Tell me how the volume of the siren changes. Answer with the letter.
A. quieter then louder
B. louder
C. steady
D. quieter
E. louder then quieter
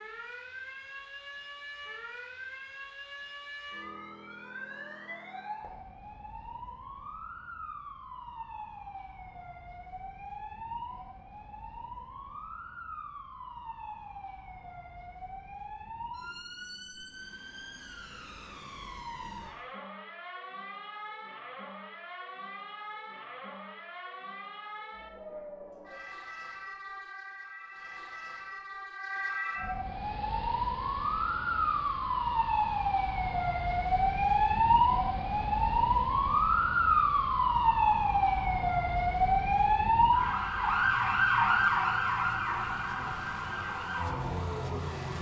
B.